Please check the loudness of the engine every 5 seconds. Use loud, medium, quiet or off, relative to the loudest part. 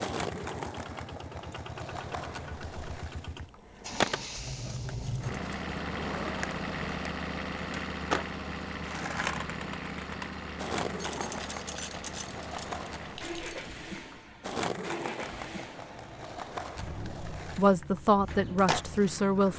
medium, loud, medium, medium.